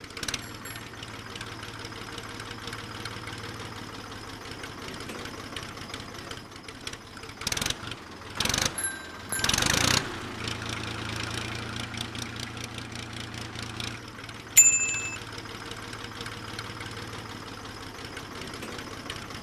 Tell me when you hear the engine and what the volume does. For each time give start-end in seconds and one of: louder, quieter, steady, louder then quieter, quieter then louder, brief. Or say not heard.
0.0-19.3 louder then quieter.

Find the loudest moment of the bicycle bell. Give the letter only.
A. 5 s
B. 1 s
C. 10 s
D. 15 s
D.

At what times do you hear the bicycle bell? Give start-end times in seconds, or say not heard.
0.4-1.4, 8.8-9.6, 14.6-15.2.